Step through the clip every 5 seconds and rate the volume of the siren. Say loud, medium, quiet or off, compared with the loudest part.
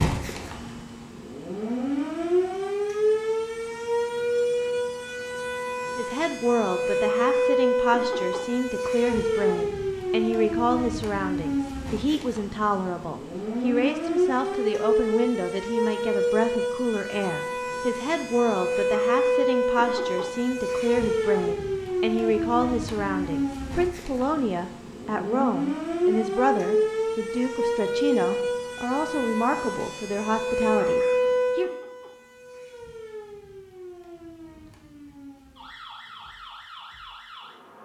loud, loud, loud, loud, loud, loud, loud, quiet.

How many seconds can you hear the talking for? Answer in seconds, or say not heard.
26 s.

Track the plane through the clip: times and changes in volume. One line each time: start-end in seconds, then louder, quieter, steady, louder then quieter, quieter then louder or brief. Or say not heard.
not heard.